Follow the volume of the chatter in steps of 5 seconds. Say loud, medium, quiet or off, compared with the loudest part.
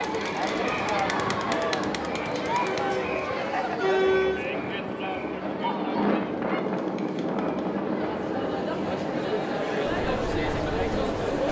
loud, medium, loud.